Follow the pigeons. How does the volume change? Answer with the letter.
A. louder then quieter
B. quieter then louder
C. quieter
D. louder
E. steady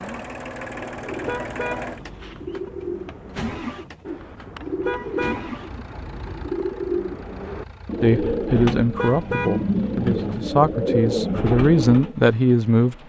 D.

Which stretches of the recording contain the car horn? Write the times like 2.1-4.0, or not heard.
1.2-2.7, 4.8-5.5, 8.9-9.9.